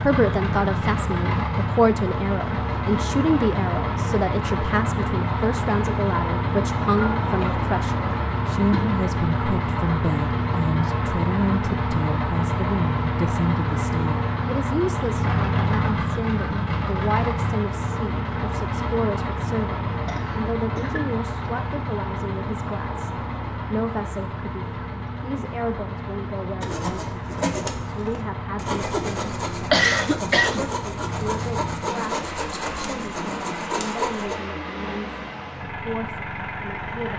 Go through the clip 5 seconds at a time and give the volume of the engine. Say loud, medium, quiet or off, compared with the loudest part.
loud, loud, loud, loud, medium, medium, medium, medium.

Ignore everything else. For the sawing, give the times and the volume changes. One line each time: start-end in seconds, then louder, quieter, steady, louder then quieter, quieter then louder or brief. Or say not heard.
26.6-34.4 steady.